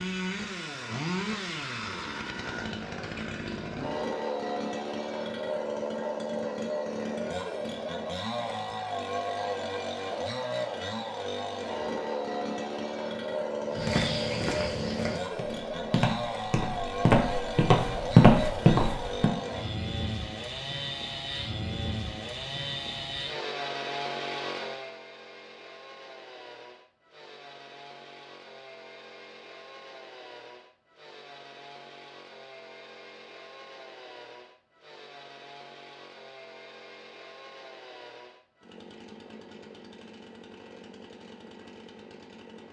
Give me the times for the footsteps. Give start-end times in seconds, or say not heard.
13.7-19.3.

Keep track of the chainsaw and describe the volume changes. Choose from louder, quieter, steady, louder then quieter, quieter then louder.
quieter.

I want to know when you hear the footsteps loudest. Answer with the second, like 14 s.
18 s.